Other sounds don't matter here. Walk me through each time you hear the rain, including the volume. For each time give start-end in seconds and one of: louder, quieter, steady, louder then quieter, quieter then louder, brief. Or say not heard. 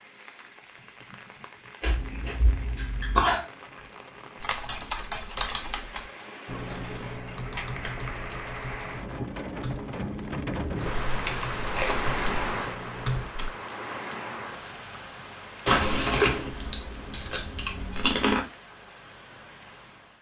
0.0-20.1 louder then quieter.